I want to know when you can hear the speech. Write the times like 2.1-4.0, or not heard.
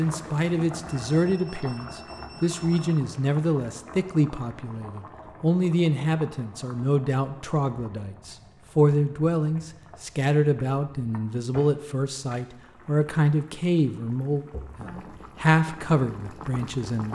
0.0-17.0.